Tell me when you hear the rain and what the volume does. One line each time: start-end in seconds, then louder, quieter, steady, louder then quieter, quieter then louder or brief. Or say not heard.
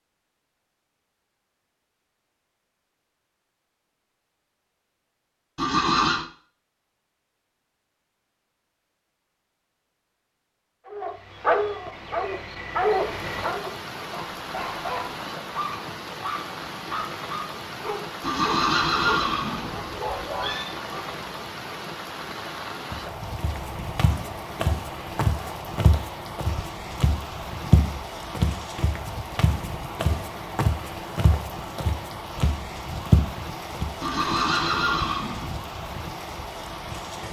12.8-37.2 steady.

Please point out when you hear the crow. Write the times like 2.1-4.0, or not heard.
not heard.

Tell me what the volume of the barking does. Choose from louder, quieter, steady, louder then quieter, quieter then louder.
quieter.